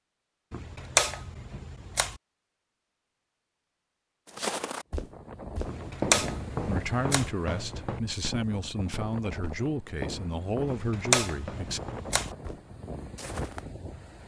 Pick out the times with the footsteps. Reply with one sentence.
You can hear the footsteps from 4.2 to 13.7 s.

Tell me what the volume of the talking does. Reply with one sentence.
The loudness of the talking stays about the same.